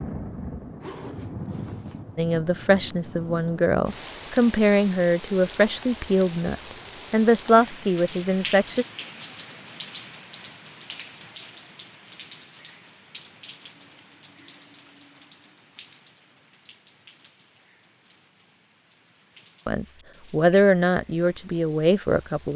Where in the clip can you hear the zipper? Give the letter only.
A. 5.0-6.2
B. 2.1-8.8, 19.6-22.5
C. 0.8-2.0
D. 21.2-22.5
C.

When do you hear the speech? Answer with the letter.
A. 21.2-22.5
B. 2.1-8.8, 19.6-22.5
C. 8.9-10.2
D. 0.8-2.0
B.